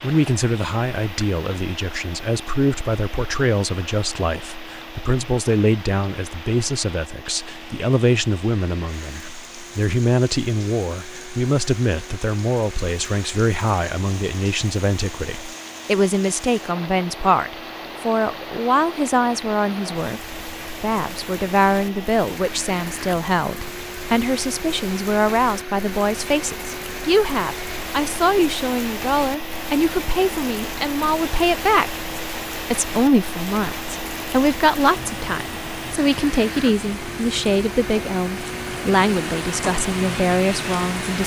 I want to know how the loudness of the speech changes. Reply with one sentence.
The volume of the speech stays about the same.